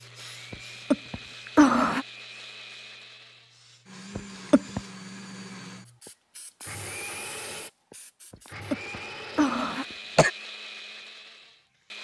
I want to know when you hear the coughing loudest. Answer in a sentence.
The loudest moment of the coughing is at 2 seconds.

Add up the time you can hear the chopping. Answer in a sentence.
The chopping can't be heard in this clip.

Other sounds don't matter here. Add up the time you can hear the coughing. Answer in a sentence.
You can hear the coughing for 4 seconds altogether.